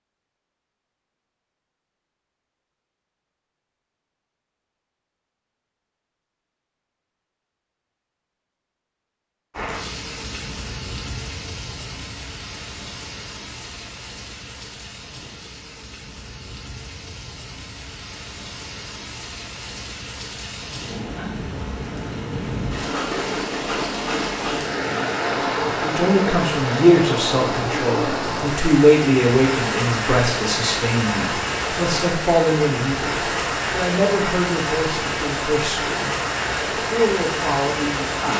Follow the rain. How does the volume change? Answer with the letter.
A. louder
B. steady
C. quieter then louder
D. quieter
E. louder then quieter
A.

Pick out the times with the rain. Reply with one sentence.
You can hear the rain from 9.5 to 38.3 s.